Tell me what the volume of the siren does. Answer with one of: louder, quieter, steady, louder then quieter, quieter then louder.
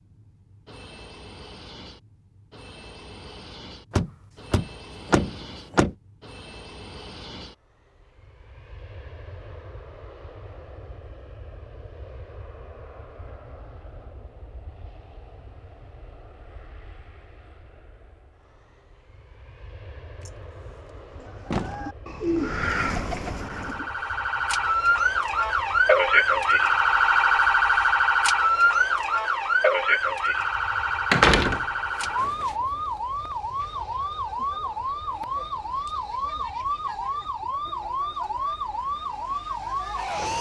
quieter.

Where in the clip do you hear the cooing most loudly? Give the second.
22 s.